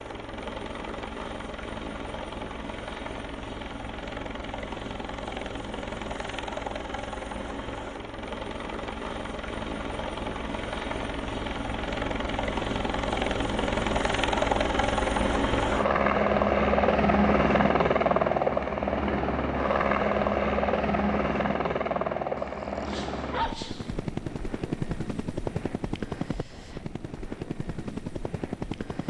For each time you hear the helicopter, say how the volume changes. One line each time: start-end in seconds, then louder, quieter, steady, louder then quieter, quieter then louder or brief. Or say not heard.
0.0-29.0 louder then quieter.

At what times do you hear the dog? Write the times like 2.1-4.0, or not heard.
22.4-23.9.